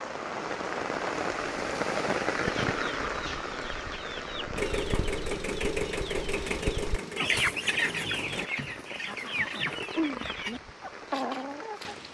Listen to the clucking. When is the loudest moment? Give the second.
7 s.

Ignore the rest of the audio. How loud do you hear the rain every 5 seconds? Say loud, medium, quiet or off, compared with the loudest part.
loud, medium, medium.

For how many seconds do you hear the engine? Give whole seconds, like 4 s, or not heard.
4 s.